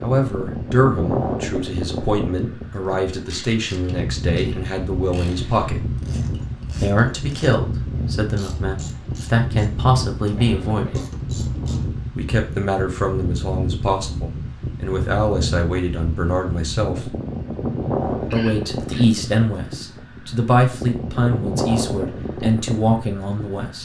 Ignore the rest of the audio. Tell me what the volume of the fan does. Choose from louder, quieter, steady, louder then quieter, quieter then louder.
steady.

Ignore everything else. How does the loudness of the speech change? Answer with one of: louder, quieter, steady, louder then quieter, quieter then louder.
steady.